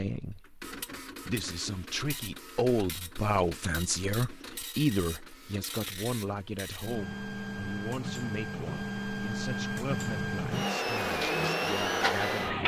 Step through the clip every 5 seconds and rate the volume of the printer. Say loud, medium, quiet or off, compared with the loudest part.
quiet, medium, loud.